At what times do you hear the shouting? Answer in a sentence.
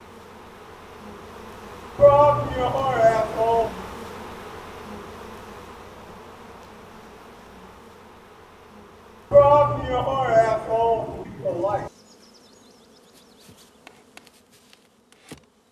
You can hear the shouting from 1.9 to 3.7 s and from 9.3 to 11.9 s.